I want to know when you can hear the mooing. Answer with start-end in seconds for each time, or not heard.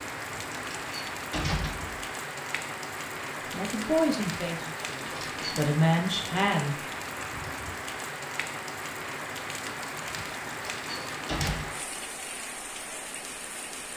not heard.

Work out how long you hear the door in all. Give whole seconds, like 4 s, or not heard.
3 s.